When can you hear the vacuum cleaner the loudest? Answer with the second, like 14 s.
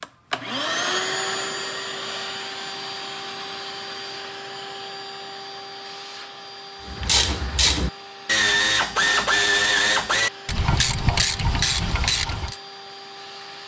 1 s.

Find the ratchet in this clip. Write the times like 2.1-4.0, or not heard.
6.8-12.6.